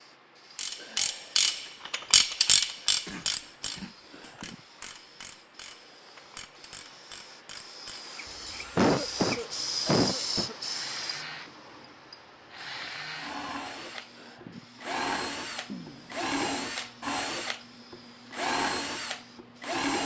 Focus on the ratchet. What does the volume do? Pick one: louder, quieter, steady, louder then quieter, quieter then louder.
quieter.